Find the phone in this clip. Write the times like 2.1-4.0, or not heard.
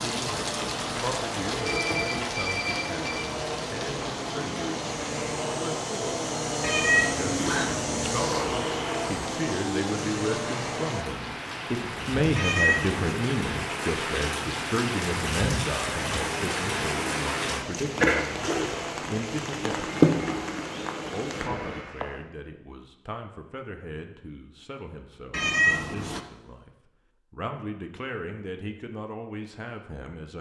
1.5-3.3.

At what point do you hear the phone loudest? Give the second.
2 s.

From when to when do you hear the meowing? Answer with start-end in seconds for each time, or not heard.
6.6-8.0, 12.3-13.2, 25.3-26.2.